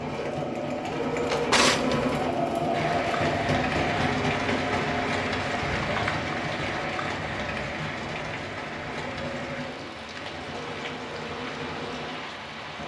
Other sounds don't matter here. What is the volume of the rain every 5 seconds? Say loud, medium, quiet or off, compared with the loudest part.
loud, loud, medium.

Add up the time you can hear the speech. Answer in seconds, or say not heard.
not heard.